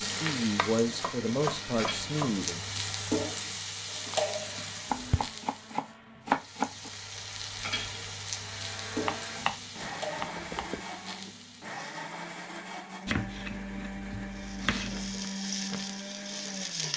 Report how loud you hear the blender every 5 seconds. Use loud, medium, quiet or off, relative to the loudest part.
medium, medium, loud, loud.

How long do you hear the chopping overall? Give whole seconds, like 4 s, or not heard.
8 s.